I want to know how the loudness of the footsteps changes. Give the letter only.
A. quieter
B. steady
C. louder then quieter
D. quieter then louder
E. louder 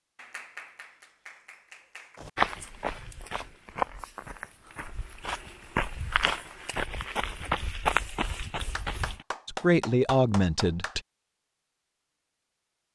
E.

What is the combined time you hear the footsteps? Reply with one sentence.
You can hear the footsteps for 7 seconds altogether.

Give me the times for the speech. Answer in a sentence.
You can hear the speech from 9.4 to 11.0 s.